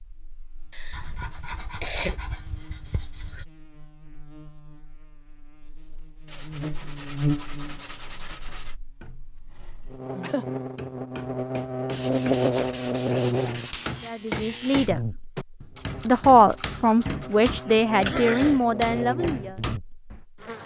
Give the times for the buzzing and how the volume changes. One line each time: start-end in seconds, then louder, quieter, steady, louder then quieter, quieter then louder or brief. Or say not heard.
0.1-20.6 louder then quieter.